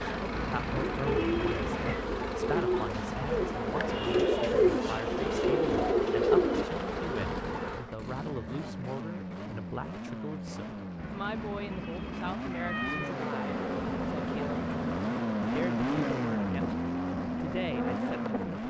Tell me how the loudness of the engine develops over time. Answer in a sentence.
The loudness of the engine goes up.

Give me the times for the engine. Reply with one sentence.
You can hear the engine from 0.0 to 18.6 s.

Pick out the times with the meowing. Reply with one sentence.
The meowing can be heard from 0.3 to 2.0 s and from 10.9 to 13.2 s.